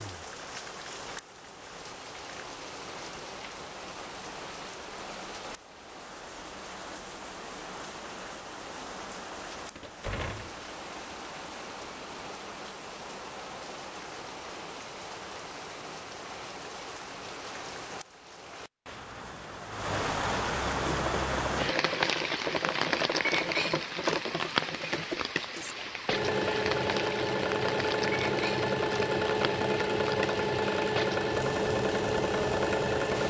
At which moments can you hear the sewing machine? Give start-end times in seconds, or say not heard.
20.8-33.2.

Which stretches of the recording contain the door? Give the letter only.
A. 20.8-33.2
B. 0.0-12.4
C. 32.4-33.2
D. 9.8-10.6
D.